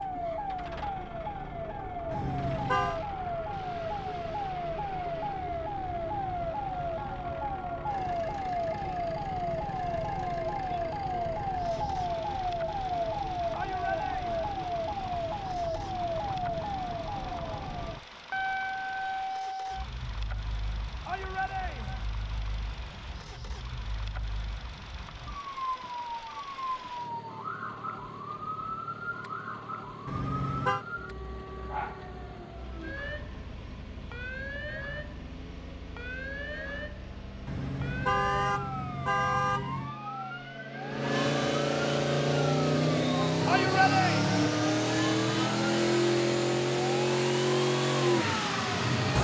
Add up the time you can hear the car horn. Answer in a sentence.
The car horn can be heard for 4 seconds in total.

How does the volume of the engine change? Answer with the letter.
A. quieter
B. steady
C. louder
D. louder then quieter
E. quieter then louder
C.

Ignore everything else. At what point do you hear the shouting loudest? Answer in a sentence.
The loudest moment of the shouting is at 44 seconds.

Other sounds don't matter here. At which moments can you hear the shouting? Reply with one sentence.
The shouting can be heard from 13.5 to 14.4 s, from 21.1 to 22.1 s and from 43.5 to 44.3 s.